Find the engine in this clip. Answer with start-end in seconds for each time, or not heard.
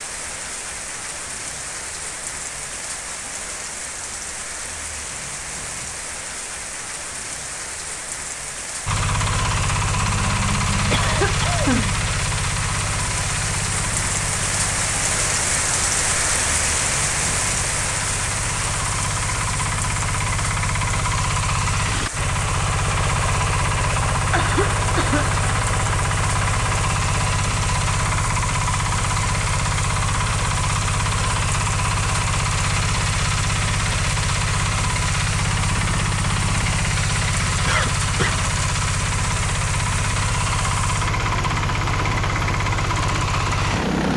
8.8-44.1.